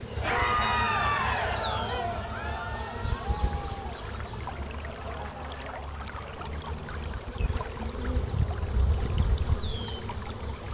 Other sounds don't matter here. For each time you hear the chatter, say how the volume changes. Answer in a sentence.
You can hear the chatter from 0.1 to 5.8 s, getting quieter.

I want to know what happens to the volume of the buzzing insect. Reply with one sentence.
The volume of the buzzing insect goes down, then up.